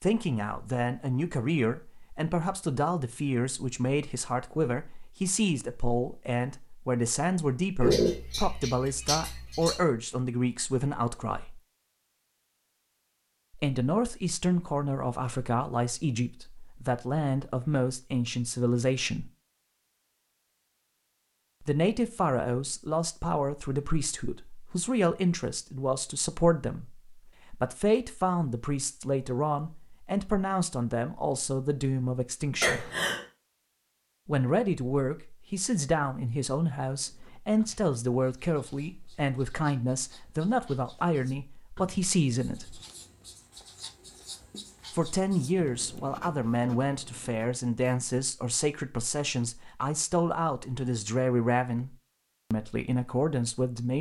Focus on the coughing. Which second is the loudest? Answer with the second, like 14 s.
8 s.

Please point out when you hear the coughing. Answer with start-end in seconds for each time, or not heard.
7.8-9.8, 32.6-33.2.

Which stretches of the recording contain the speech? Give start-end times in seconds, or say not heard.
0.0-11.6, 13.6-19.3, 21.6-32.9, 34.2-42.8, 44.9-53.9.